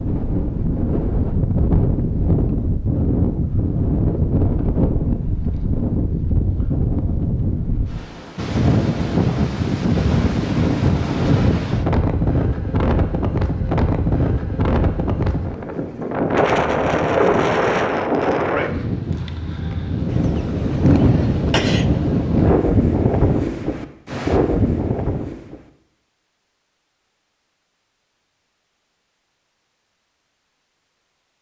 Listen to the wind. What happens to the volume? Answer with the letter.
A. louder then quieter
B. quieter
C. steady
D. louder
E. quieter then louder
C.